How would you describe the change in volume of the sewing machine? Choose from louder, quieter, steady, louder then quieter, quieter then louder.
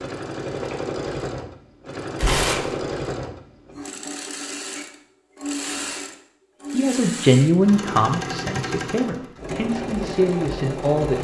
steady.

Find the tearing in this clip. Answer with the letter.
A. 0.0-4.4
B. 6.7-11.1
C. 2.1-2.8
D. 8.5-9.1
C.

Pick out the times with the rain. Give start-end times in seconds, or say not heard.
not heard.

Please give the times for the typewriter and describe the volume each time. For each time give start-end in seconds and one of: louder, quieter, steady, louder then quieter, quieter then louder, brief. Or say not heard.
not heard.